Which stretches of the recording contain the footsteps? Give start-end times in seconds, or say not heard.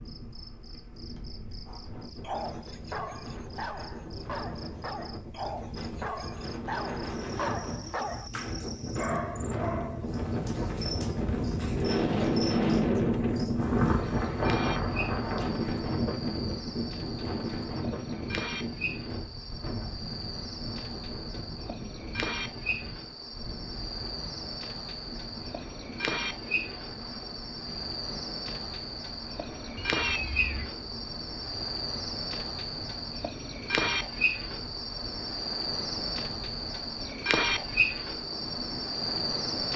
not heard.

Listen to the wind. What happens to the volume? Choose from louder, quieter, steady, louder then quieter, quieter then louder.
louder then quieter.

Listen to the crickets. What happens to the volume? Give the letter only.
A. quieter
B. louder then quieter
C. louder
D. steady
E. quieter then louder
C.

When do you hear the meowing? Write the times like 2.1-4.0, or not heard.
29.8-30.7.